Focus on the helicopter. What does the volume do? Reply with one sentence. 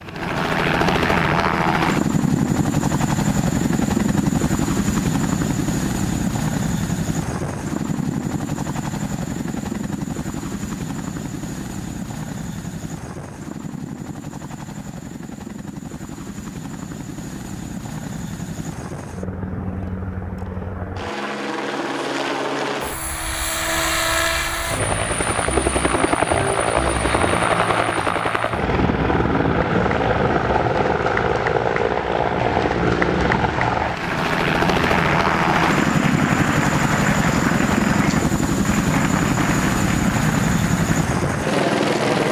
The volume of the helicopter goes down, then up.